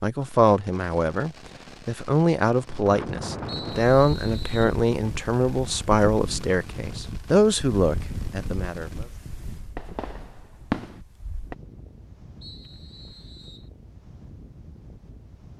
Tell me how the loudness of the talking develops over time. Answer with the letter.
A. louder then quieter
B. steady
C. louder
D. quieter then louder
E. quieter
B.